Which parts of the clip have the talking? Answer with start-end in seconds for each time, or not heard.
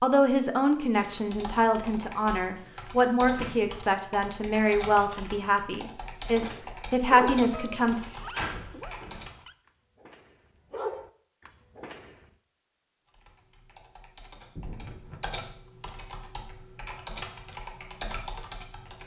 0.0-8.0.